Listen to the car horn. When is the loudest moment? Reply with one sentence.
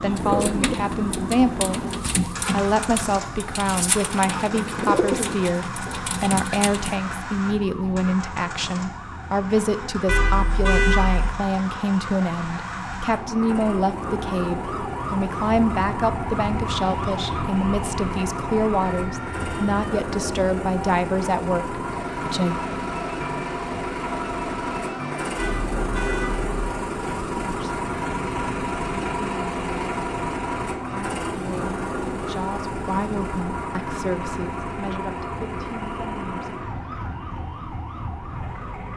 The loudest moment of the car horn is at 11 seconds.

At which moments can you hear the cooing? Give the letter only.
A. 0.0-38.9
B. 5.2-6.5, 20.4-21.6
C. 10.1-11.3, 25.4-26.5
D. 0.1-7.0
D.